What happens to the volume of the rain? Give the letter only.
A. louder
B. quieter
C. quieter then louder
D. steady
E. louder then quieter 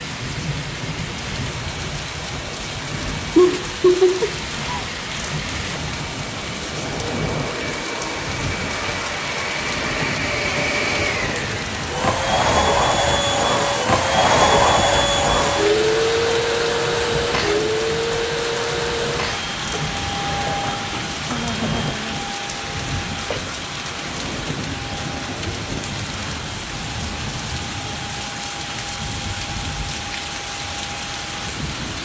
D.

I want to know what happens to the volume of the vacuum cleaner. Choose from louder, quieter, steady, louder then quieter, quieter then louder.
louder then quieter.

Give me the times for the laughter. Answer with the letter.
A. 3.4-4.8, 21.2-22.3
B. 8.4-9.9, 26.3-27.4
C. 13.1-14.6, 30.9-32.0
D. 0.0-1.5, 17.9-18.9
A.